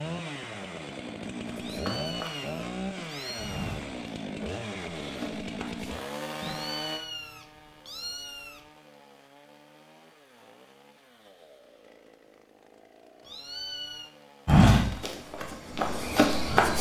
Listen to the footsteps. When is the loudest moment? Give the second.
15 s.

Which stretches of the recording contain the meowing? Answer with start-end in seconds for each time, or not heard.
1.6-3.8, 6.3-8.7, 13.2-14.1.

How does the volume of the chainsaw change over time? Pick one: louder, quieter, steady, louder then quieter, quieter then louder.
quieter.